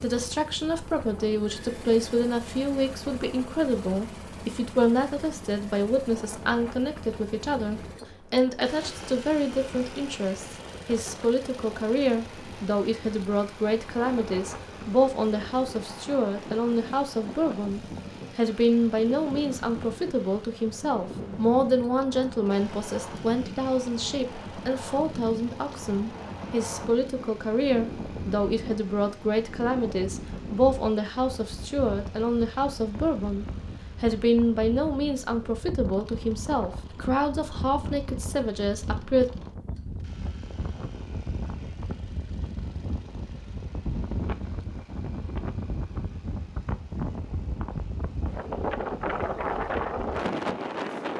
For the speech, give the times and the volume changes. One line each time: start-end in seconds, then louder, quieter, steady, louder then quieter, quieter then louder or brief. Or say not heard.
0.0-39.2 steady.